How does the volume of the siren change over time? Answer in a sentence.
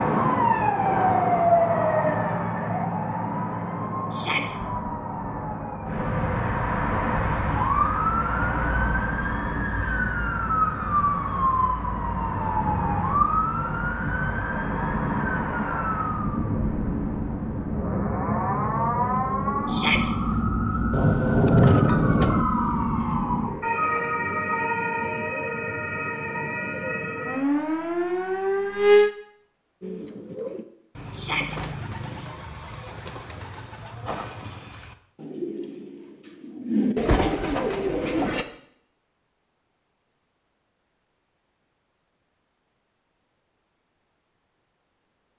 The volume of the siren stays about the same.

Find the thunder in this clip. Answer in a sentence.
The thunder can be heard from 20.9 to 22.4 s.